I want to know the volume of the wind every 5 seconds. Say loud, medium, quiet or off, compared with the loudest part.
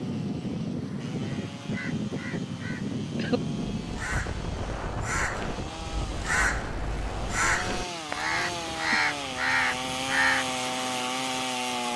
loud, medium, quiet.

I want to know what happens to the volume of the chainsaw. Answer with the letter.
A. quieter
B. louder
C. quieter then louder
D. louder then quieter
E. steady
B.